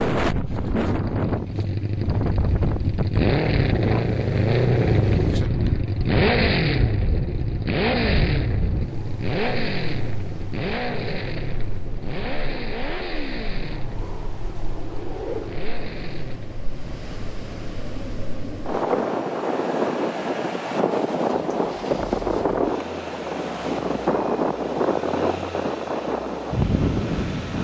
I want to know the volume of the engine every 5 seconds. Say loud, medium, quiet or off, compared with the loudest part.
loud, loud, medium, quiet, quiet, quiet.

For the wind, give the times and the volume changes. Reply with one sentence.
The wind can be heard from 0.0 to 27.5 s, getting quieter then louder.